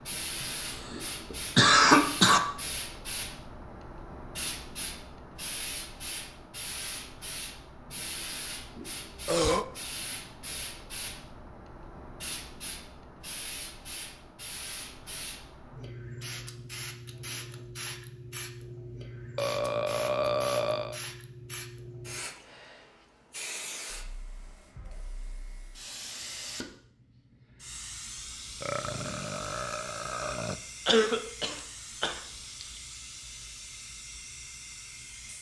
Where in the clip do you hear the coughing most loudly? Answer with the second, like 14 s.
2 s.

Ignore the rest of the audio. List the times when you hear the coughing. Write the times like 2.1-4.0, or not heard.
0.4-2.4, 30.9-32.6.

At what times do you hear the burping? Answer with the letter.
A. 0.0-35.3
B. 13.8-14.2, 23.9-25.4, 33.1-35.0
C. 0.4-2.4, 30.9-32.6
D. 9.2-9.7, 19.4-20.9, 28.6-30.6
D.